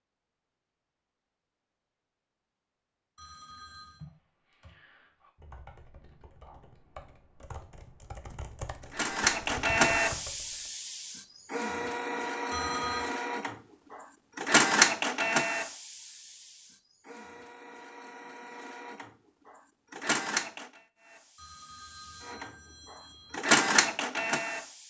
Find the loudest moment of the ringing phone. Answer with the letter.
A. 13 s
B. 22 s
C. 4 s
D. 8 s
A.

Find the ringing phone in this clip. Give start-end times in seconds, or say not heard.
3.1-4.0, 12.5-13.1, 21.4-23.4.